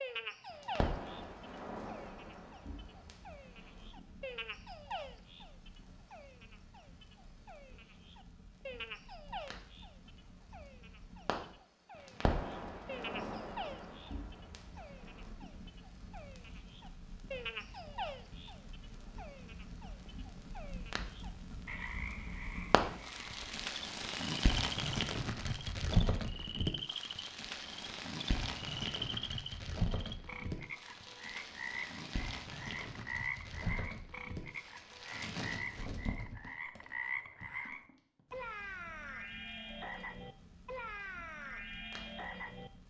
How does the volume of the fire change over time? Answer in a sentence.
The volume of the fire goes up, then down.